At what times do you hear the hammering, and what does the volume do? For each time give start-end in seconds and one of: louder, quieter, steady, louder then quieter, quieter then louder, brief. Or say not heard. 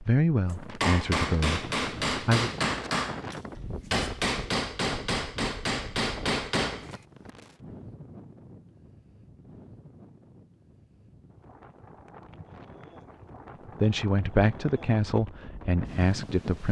0.8-7.0 steady.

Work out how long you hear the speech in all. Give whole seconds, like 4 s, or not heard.
5 s.